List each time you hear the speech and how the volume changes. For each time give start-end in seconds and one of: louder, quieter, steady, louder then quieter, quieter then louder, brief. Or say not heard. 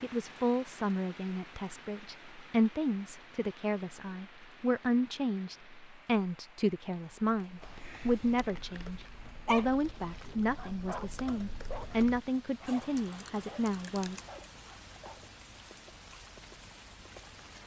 0.0-14.2 steady.